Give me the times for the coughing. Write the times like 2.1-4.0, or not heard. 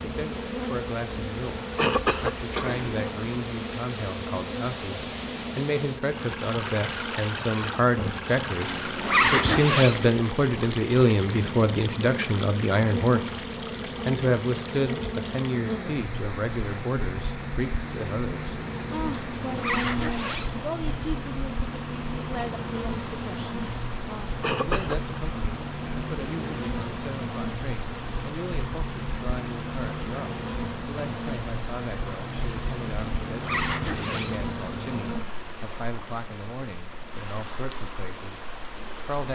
1.5-3.4, 24.4-24.9.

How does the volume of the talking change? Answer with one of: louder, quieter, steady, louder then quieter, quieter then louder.
louder then quieter.